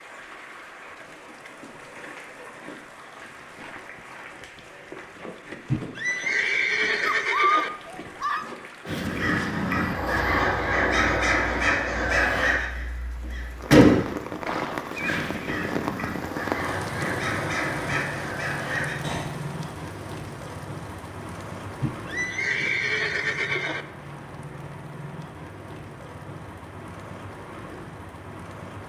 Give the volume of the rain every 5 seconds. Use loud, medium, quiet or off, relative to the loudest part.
medium, medium, loud, loud, medium, medium.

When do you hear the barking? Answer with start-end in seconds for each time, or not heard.
7.0-8.4.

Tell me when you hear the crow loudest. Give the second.
14 s.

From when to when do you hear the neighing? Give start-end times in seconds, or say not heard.
5.7-7.7, 14.4-15.6, 21.8-23.9.